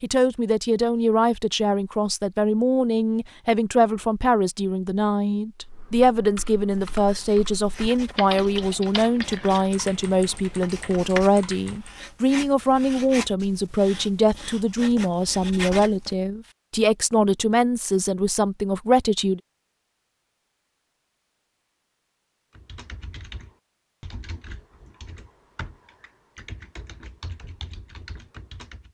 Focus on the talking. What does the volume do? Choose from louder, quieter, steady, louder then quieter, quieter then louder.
steady.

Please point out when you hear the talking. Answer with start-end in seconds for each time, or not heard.
0.0-19.4.